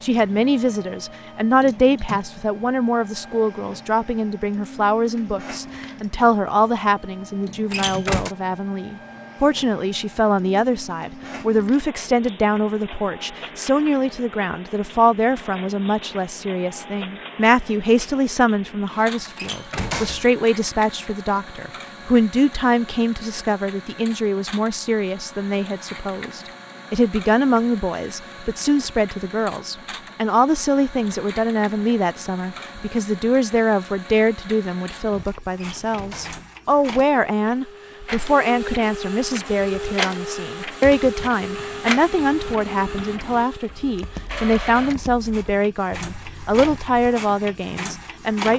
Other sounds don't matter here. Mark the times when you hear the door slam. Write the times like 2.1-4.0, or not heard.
7.7-8.3, 19.4-20.3, 35.5-36.5.